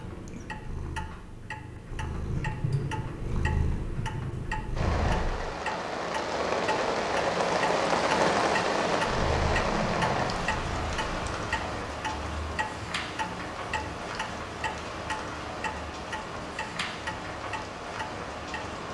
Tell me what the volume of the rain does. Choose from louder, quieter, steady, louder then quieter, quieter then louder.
quieter.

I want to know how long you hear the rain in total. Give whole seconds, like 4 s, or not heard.
14 s.